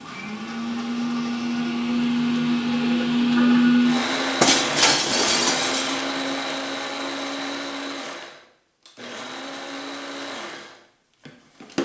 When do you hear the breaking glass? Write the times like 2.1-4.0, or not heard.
4.4-6.0.